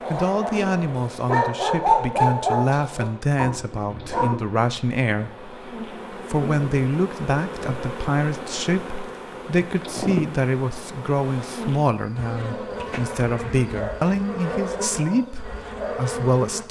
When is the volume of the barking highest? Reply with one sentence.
The volume of the barking peaks at 2 seconds.